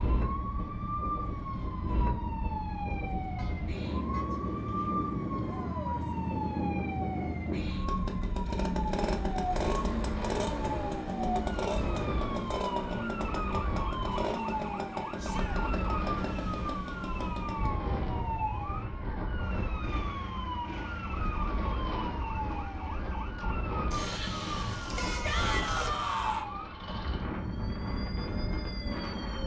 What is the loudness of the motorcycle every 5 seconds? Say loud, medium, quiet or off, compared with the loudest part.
medium, loud, loud, medium, medium, medium.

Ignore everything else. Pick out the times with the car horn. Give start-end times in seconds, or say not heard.
3.4-4.2, 23.9-25.9.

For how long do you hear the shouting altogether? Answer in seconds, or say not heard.
2 s.